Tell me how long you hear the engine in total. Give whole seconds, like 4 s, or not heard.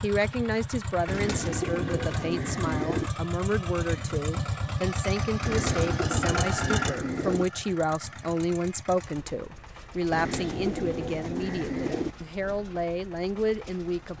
14 s.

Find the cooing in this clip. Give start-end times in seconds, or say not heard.
1.1-3.1, 5.5-7.5, 10.1-12.2.